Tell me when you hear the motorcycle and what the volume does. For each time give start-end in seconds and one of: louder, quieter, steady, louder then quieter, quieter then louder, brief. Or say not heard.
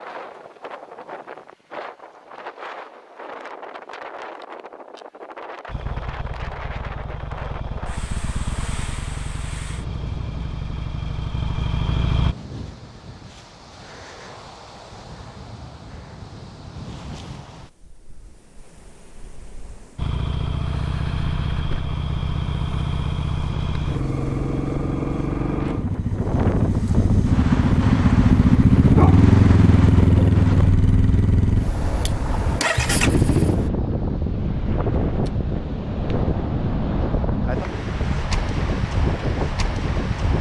5.7-12.3 louder
19.9-33.7 louder then quieter.